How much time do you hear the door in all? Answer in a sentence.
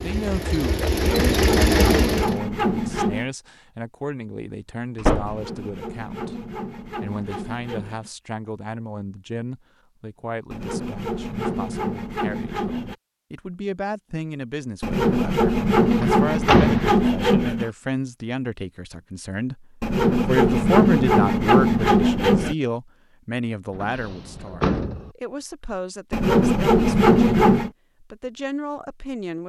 The door can be heard for 3 seconds in total.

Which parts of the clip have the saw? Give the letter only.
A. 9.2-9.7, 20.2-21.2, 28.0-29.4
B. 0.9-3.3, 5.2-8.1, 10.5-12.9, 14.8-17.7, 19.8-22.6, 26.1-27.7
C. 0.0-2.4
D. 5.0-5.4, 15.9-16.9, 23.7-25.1
B.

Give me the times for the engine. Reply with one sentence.
The engine can be heard from 0.0 to 2.4 s.